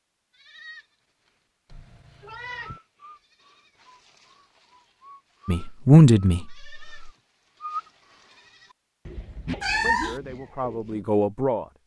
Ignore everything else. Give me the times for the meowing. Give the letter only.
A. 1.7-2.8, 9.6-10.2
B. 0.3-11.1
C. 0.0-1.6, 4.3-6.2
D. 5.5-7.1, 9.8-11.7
A.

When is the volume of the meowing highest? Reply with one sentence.
The volume of the meowing peaks at 10 seconds.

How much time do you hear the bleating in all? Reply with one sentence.
You can hear the bleating for 11 seconds altogether.